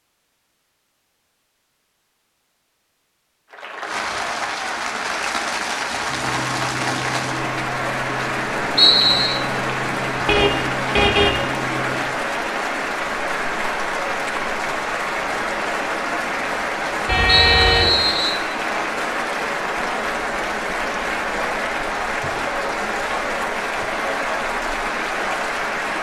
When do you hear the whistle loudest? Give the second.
9 s.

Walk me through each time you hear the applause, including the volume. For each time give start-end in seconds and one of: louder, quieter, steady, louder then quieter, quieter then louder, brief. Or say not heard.
3.5-25.9 steady.